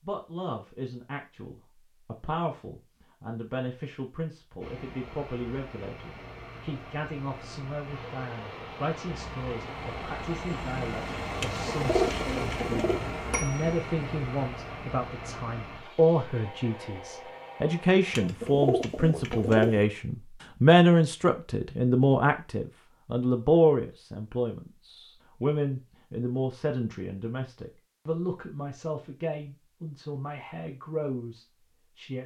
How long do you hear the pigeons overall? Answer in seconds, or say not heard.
3 s.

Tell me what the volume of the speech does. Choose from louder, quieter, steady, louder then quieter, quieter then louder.
louder then quieter.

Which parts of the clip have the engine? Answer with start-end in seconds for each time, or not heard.
4.6-18.3.